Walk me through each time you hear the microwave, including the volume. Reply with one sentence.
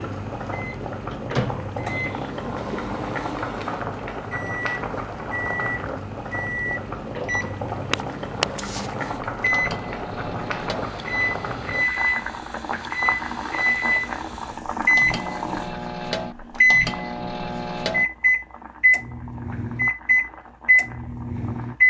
You can hear the microwave from 0.0 to 21.8 s, getting louder.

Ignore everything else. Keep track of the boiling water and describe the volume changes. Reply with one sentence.
The volume of the boiling water goes down.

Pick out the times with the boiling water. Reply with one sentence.
The boiling water can be heard from 0.0 to 21.8 s.